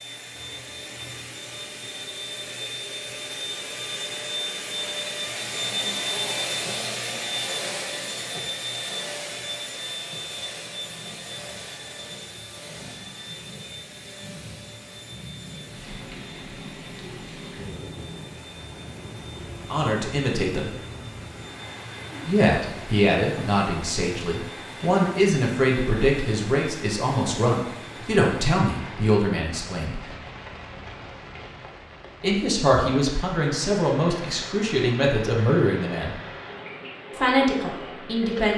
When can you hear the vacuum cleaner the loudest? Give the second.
6 s.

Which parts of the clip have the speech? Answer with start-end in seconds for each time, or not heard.
19.7-20.7, 22.2-30.1, 32.2-36.2, 37.1-38.5.